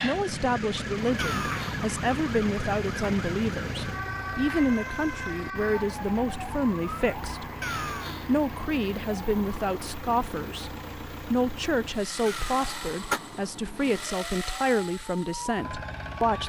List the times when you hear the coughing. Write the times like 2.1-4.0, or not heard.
1.1-1.8, 7.6-8.3, 12.2-13.2.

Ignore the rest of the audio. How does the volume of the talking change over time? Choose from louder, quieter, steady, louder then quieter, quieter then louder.
steady.